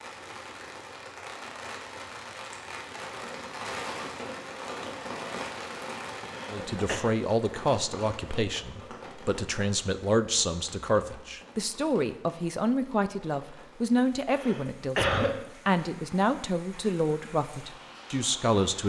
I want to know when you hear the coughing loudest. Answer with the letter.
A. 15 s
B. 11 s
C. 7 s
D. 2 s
A.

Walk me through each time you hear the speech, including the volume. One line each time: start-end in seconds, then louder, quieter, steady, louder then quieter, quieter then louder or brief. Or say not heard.
6.5-18.8 steady.